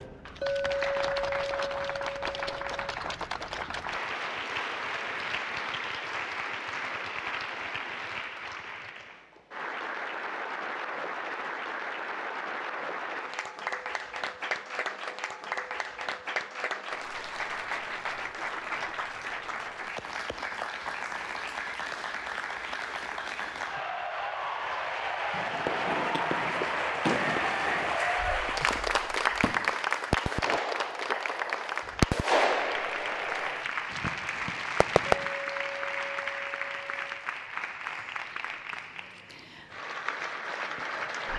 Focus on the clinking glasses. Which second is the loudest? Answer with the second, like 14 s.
1 s.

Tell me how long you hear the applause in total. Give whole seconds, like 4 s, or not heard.
41 s.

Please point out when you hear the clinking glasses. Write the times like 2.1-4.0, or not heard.
0.4-2.9, 35.0-37.1.